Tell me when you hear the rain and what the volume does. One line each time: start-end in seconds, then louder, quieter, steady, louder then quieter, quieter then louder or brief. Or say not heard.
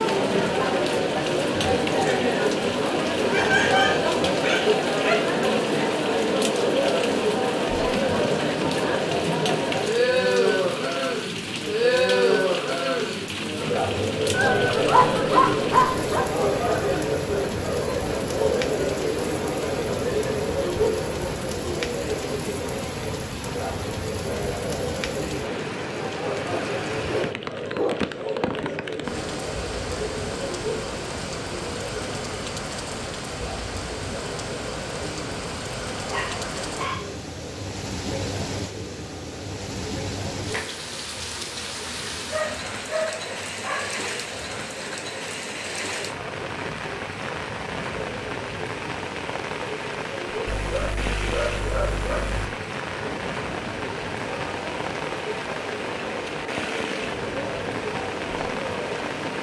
0.0-59.3 steady.